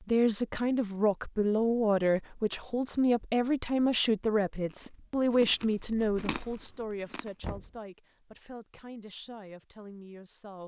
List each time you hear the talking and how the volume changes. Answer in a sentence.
You can hear the talking from 0.0 to 10.6 s, getting quieter.